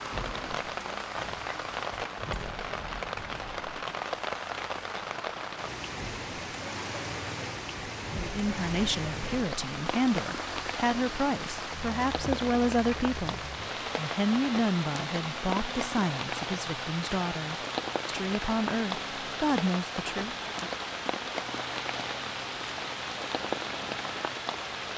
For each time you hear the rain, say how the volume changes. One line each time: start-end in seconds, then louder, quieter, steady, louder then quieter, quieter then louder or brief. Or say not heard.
0.0-24.9 steady.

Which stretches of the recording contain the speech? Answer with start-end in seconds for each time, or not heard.
8.2-20.4.